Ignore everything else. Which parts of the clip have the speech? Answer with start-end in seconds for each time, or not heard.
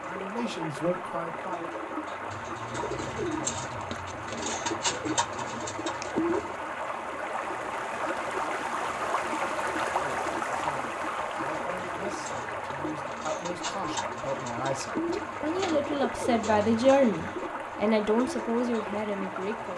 0.0-1.7, 9.9-19.7.